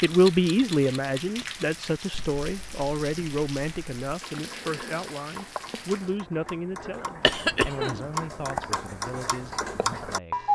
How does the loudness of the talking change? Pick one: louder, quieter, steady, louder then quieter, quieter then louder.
quieter.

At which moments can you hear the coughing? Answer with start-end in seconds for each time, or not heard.
7.2-8.1.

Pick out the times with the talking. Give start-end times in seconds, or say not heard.
0.0-10.4.